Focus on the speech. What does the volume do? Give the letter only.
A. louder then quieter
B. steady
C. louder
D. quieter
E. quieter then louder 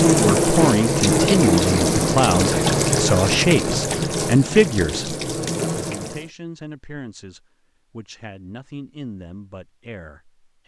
D.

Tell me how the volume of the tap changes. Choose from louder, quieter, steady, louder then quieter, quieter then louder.
quieter.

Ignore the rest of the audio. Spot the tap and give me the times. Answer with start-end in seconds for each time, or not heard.
0.0-6.3.